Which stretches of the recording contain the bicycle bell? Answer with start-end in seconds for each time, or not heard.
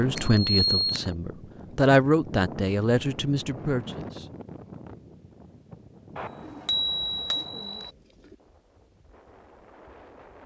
0.1-1.1, 6.2-7.9.